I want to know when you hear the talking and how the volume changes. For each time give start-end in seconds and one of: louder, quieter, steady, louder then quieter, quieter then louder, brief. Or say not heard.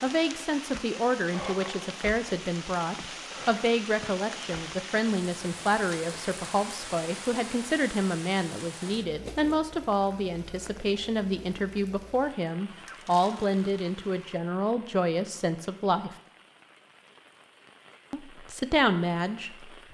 0.0-16.1 steady
18.1-19.7 brief.